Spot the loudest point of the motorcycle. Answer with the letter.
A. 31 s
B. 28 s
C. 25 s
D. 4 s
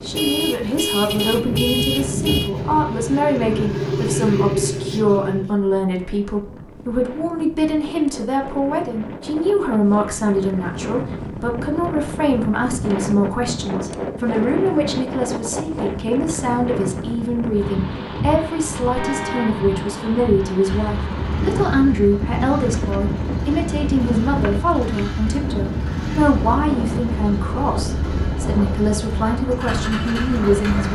D.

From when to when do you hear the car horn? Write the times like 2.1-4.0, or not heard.
0.1-2.5, 18.9-19.6.